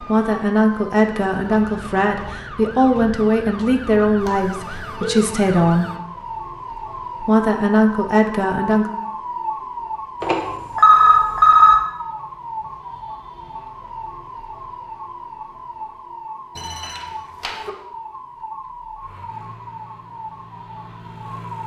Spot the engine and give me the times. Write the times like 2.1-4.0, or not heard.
19.0-21.6.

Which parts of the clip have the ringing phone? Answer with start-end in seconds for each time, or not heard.
4.2-5.2, 10.2-11.8, 16.6-17.7.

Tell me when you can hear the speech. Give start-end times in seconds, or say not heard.
0.0-5.9, 7.2-8.9.